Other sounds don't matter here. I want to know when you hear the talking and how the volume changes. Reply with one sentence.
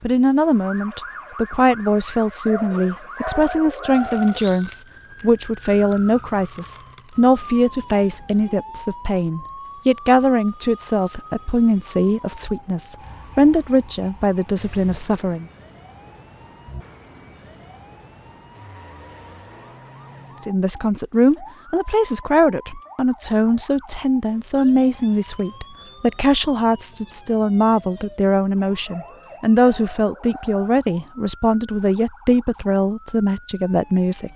You can hear the talking from 0.0 to 15.4 s, at a steady volume; and from 20.4 to 34.3 s, at a steady volume.